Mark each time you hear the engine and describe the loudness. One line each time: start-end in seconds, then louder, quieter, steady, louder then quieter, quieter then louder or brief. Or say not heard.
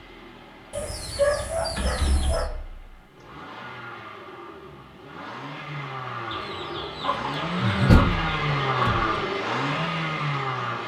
0.0-10.8 louder.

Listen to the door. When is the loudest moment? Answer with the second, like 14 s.
8 s.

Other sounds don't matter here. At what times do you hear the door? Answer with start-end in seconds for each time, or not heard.
1.8-3.0, 7.8-9.1.